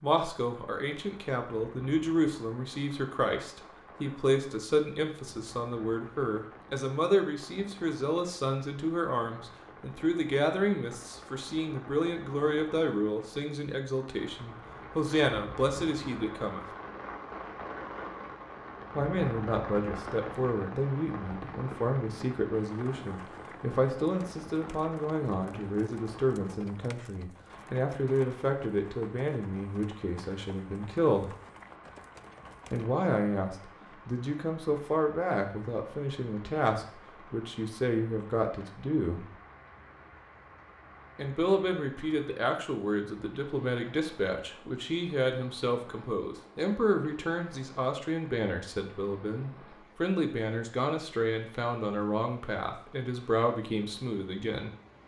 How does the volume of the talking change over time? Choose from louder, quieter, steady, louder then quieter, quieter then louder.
steady.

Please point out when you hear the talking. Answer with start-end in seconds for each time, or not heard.
0.0-16.6, 18.9-31.3, 32.7-39.2, 41.1-54.8.